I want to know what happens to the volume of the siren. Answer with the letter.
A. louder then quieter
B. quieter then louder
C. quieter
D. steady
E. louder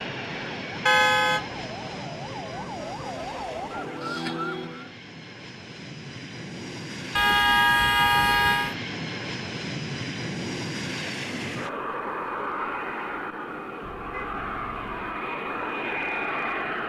E.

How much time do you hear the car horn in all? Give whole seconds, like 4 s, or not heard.
4 s.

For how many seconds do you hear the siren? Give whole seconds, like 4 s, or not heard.
5 s.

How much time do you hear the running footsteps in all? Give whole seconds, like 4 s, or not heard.
not heard.